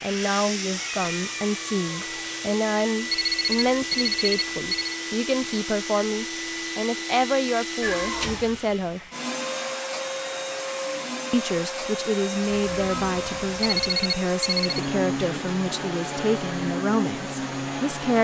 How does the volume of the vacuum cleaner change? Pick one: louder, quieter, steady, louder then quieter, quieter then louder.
steady.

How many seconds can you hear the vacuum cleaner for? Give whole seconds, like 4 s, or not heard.
18 s.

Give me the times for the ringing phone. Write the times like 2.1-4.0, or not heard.
3.1-5.0, 13.6-14.8.